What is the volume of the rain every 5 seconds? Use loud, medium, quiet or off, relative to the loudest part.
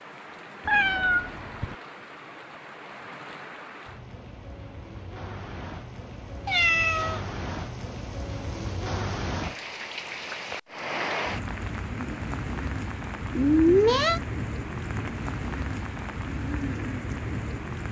medium, loud, loud, loud.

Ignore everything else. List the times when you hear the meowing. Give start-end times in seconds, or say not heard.
0.7-1.8, 6.5-7.2, 13.3-14.2.